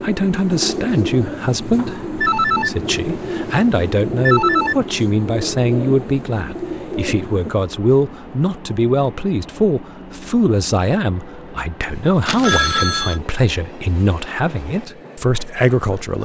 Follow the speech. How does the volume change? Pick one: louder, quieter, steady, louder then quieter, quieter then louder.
steady.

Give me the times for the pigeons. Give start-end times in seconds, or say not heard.
0.0-7.5.